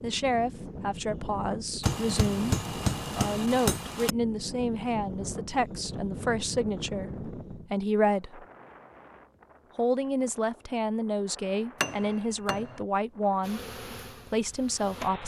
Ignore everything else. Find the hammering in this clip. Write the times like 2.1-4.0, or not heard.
1.8-4.2, 11.8-12.8.